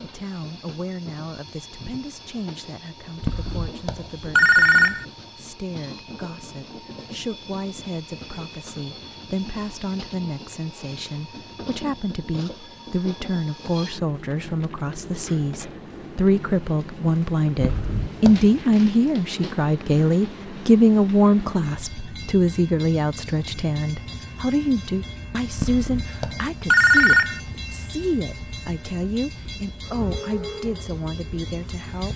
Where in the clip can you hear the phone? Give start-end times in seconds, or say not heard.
3.2-5.0, 17.6-18.6, 25.6-27.4.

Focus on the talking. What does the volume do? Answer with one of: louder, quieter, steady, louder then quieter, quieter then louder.
louder then quieter.